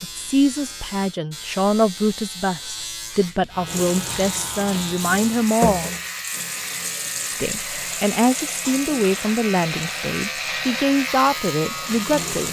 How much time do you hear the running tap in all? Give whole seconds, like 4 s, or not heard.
9 s.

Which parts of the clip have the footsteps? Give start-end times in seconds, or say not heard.
not heard.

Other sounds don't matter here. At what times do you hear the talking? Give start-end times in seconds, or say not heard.
0.0-6.0, 7.3-12.4.